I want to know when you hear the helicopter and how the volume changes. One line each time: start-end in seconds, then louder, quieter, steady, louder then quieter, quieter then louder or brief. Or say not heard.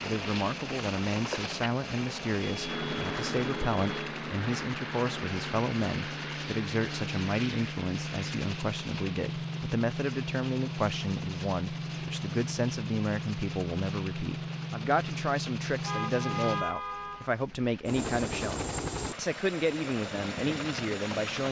0.0-21.4 steady.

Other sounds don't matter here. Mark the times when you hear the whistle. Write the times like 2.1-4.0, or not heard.
not heard.